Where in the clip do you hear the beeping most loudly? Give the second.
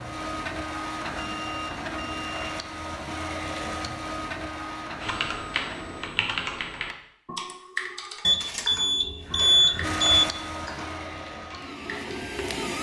10 s.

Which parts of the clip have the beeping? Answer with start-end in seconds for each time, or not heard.
1.4-2.5, 8.2-10.2.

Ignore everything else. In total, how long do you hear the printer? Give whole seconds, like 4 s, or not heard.
9 s.